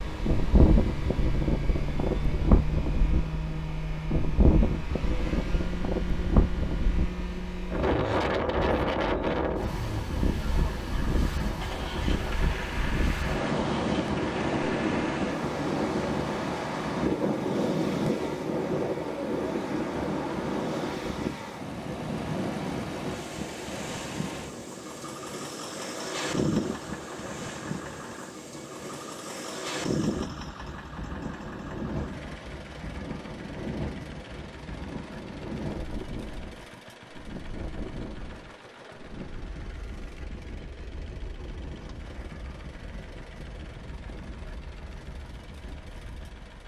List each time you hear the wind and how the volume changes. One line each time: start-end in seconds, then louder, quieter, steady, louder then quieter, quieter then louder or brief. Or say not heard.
0.0-46.6 quieter.